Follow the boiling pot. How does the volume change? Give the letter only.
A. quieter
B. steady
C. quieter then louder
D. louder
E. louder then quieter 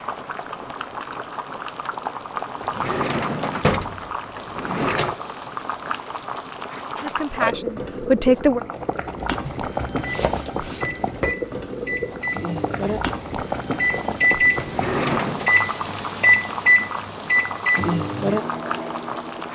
B.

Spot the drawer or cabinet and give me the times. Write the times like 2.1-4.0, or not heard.
2.6-5.2, 14.6-15.5.